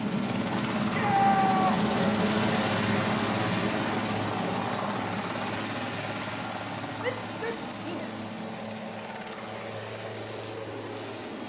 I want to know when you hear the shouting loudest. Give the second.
1 s.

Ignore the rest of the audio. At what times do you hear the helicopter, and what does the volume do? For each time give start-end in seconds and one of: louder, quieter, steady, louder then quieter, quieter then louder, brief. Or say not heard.
0.0-11.4 quieter.